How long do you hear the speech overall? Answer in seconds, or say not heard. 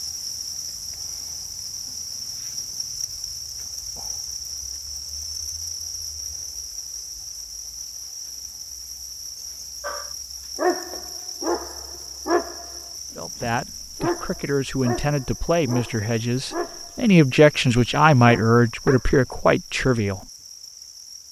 7 s.